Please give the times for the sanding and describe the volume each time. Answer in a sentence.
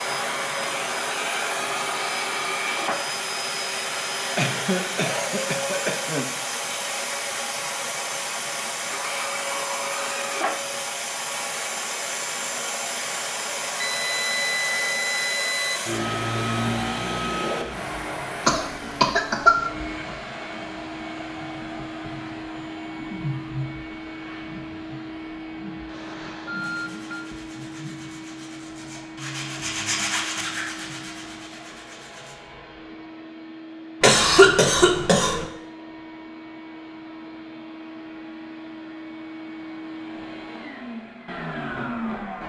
The sanding can be heard from 26.6 to 32.4 s, getting louder then quieter.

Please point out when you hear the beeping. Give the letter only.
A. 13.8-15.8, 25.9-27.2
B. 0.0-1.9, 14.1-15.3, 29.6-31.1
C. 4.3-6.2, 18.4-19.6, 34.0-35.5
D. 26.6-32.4
A.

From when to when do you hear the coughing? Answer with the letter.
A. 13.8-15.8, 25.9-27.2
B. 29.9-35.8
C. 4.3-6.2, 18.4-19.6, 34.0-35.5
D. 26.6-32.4
C.